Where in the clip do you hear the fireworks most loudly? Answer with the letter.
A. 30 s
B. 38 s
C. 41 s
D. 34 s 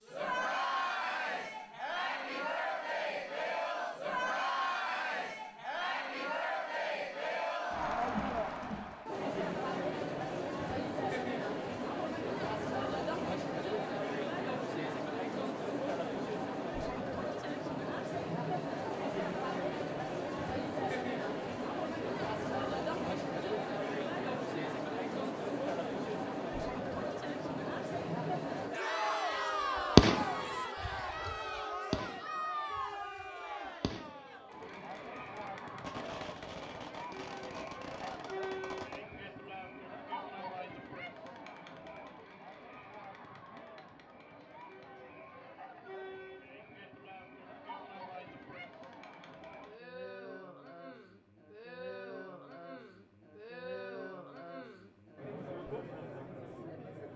A.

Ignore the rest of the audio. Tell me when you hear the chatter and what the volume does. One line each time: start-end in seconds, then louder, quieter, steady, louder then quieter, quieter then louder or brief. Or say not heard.
0.0-57.1 quieter.